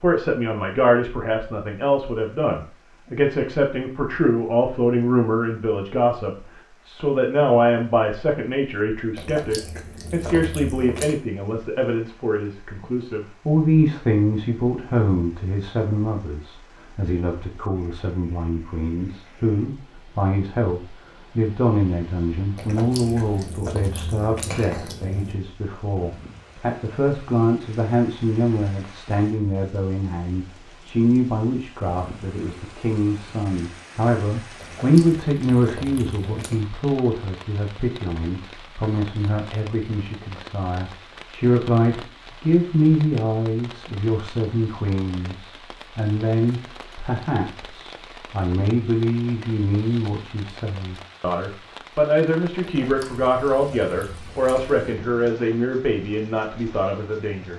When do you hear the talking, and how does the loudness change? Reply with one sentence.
You can hear the talking from 0.0 to 57.5 s, at a steady volume.